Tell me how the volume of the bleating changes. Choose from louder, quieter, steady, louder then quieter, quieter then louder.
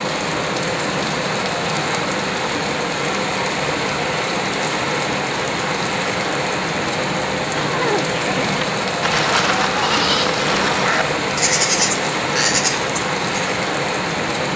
louder.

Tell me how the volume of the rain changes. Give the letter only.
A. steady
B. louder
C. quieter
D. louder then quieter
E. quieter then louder
A.